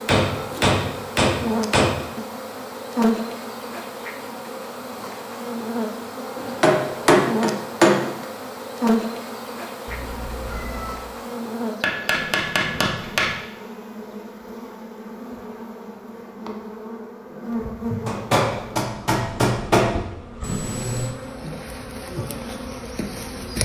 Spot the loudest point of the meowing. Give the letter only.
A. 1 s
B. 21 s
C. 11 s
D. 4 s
B.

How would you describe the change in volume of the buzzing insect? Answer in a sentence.
The loudness of the buzzing insect goes down.